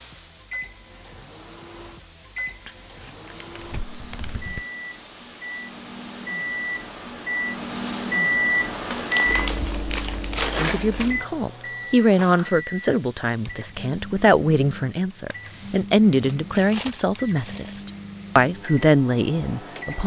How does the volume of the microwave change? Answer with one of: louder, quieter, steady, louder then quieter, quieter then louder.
louder then quieter.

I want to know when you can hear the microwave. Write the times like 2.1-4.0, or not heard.
0.0-20.0.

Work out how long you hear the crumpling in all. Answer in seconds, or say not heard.
6 s.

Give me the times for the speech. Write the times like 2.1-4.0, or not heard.
10.6-20.0.